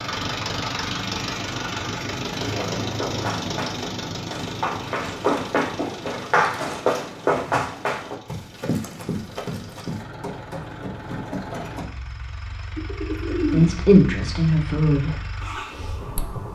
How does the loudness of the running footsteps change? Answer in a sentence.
The loudness of the running footsteps goes up, then down.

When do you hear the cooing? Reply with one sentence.
You can hear the cooing from 12.8 to 13.7 s.